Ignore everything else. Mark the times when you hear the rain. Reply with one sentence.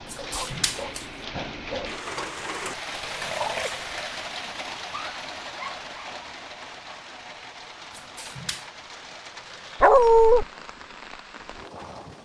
The rain can be heard from 0.0 to 12.2 s.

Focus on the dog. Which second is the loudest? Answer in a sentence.
The volume of the dog peaks at 10 seconds.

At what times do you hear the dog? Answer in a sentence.
The dog can be heard from 0.1 to 2.0 s, from 4.3 to 6.3 s and from 9.8 to 10.4 s.